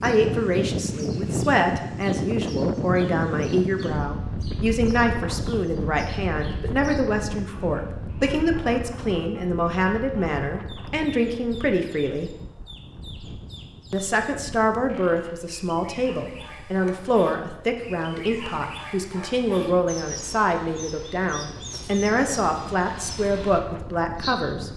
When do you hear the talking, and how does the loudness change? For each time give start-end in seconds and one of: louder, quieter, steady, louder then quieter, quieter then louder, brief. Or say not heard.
0.0-12.3 steady
13.9-24.7 steady.